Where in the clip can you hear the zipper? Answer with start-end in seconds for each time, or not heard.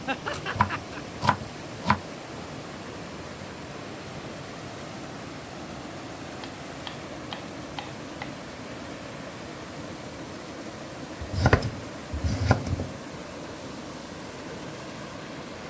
not heard.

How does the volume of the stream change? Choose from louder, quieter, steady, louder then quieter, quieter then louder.
steady.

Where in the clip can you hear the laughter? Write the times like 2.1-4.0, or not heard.
0.1-1.1.